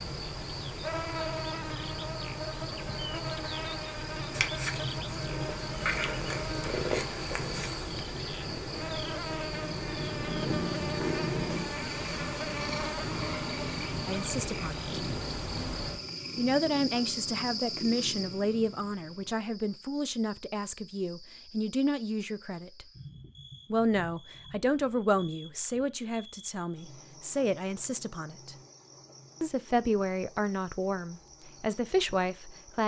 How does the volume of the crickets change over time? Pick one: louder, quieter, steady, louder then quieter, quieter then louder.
quieter.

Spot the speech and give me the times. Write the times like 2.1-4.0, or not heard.
14.1-14.8, 16.4-22.9, 23.7-28.6, 29.4-32.8.